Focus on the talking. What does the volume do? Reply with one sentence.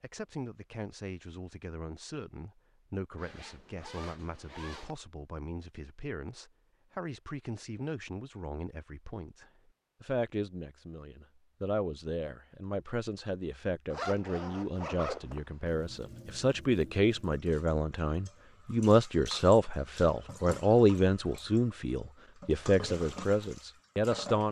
The loudness of the talking goes up.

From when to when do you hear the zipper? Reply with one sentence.
You can hear the zipper from 3.1 to 5.0 s and from 13.9 to 15.4 s.